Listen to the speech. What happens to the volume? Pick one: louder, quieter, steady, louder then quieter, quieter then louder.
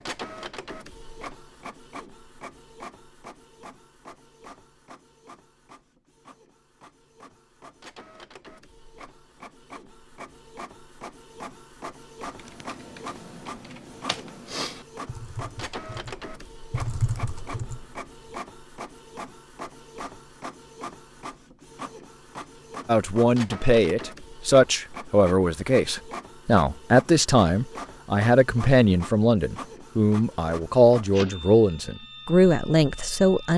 steady.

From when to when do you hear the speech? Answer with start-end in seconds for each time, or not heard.
22.9-33.5.